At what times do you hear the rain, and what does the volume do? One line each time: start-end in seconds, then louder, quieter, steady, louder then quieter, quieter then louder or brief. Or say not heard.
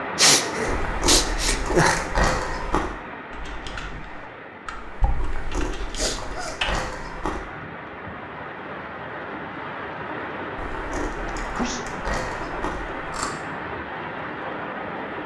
0.0-15.2 quieter then louder.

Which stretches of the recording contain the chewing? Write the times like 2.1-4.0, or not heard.
0.7-3.0, 5.2-7.4, 10.6-13.3.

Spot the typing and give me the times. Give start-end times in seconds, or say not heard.
3.3-6.8.